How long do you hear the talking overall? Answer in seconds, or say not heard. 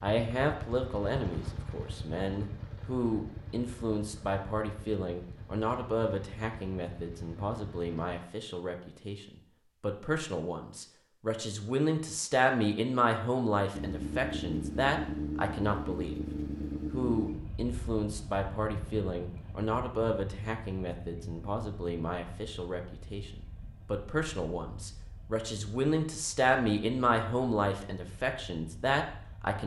29 s.